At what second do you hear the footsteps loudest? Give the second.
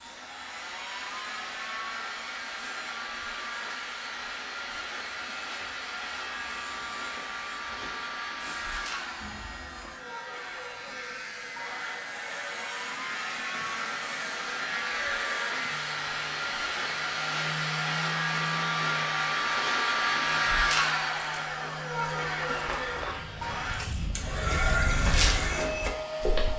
25 s.